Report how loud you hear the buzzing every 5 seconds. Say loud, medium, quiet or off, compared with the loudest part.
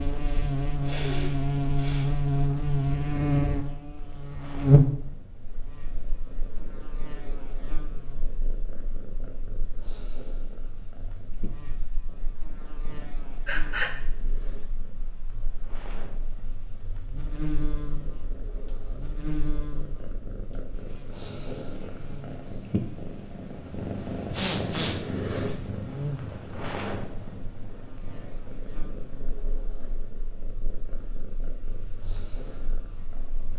loud, quiet, quiet, quiet, quiet, quiet, quiet.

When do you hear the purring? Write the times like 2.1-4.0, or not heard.
0.0-33.5.